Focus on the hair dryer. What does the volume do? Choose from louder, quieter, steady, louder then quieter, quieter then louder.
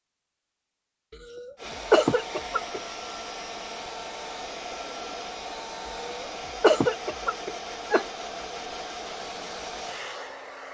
steady.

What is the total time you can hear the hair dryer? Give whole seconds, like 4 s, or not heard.
9 s.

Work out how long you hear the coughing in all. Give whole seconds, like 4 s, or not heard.
4 s.